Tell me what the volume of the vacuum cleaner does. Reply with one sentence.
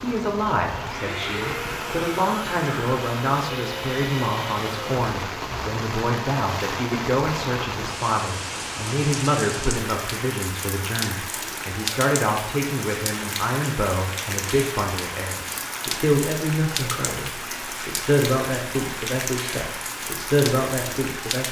The loudness of the vacuum cleaner stays about the same.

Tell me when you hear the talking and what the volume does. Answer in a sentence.
You can hear the talking from 0.0 to 21.4 s, at a steady volume.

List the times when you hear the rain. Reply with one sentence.
You can hear the rain from 0.0 to 21.4 s.